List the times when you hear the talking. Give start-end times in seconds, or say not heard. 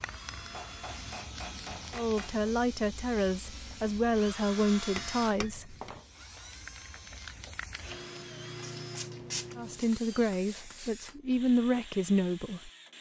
1.9-5.8, 9.6-12.7.